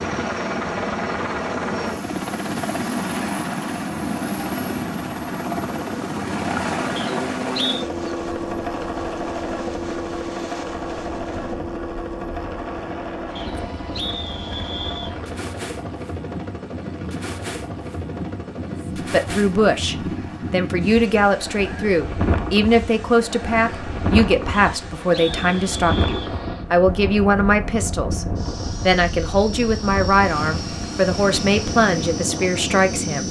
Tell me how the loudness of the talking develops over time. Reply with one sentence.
The volume of the talking stays about the same.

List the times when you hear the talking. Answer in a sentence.
The talking can be heard from 18.9 to 33.2 s.